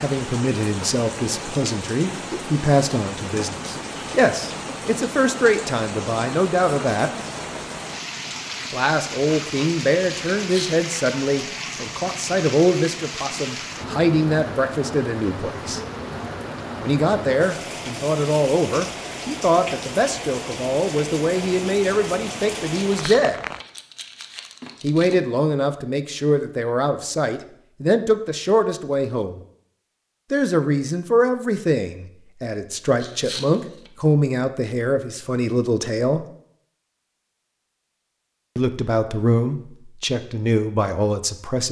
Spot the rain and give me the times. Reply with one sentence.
You can hear the rain from 0.0 to 23.6 s.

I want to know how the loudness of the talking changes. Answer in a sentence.
The loudness of the talking stays about the same.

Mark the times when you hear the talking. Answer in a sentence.
The talking can be heard from 0.0 to 7.1 s, from 8.7 to 15.8 s, from 16.8 to 23.4 s, from 24.8 to 29.4 s, from 30.3 to 36.2 s and from 38.5 to 41.6 s.